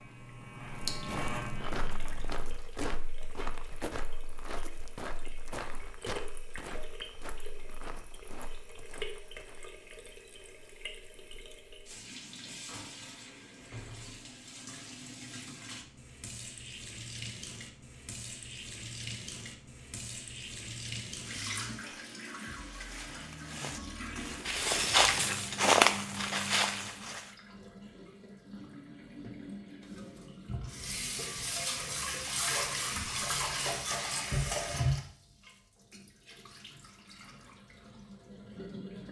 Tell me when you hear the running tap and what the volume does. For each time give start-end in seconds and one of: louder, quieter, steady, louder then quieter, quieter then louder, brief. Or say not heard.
0.0-39.0 louder.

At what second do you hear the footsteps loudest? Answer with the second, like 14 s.
26 s.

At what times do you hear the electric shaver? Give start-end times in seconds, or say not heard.
0.0-2.6.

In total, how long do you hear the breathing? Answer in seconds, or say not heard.
not heard.